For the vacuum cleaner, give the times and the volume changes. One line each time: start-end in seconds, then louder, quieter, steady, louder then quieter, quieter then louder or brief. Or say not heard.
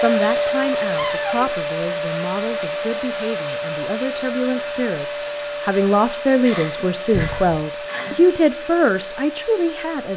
0.0-10.1 quieter.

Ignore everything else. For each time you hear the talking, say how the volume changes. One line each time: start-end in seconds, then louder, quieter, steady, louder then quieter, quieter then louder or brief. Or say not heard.
0.0-10.1 louder.